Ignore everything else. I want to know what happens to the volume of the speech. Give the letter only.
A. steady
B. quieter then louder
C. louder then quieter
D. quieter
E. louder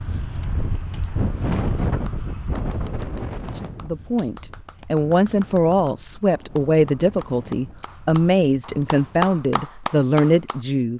A.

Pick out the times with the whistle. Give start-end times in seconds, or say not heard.
not heard.